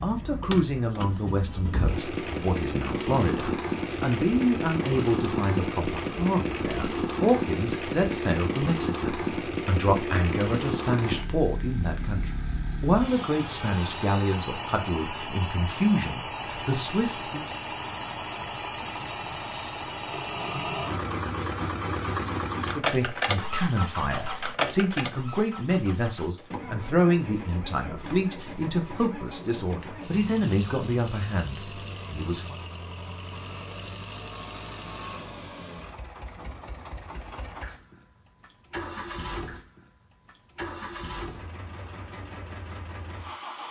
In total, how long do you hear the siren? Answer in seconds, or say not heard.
not heard.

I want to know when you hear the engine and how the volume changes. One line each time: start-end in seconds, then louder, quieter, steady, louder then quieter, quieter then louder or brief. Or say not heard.
0.0-43.6 quieter.